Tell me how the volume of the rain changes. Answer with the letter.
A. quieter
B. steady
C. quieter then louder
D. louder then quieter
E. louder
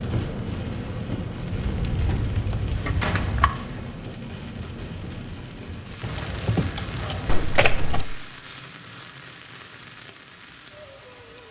A.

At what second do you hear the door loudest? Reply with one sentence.
The loudest moment of the door is at 3 seconds.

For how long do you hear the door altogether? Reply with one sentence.
The door can be heard for 3 seconds in total.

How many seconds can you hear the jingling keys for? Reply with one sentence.
The jingling keys can be heard for 4 seconds in total.